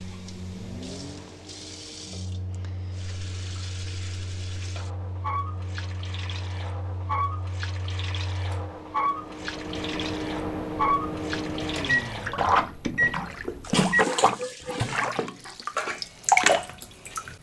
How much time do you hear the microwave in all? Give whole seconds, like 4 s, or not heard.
14 s.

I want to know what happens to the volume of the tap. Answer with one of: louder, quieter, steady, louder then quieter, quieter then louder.
louder.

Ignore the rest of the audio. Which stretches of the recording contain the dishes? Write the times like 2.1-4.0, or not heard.
13.6-17.1.